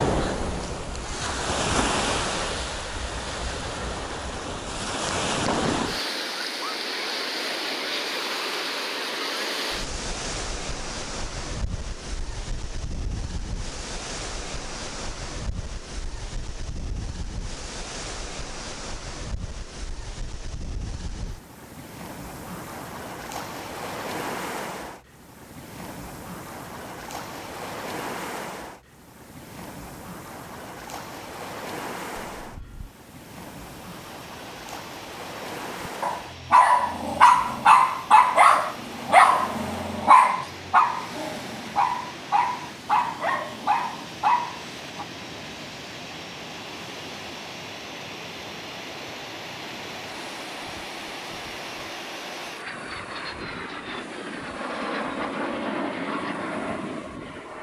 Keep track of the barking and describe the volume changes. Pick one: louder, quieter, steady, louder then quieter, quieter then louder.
quieter.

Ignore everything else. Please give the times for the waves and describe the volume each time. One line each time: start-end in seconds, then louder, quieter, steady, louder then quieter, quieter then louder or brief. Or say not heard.
0.0-57.5 quieter.